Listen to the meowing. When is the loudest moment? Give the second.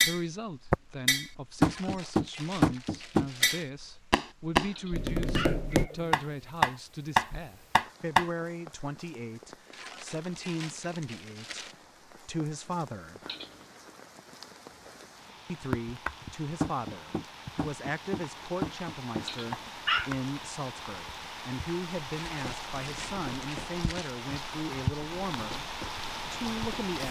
20 s.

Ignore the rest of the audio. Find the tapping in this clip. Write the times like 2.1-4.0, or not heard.
0.0-8.3, 15.7-20.2, 22.4-26.9.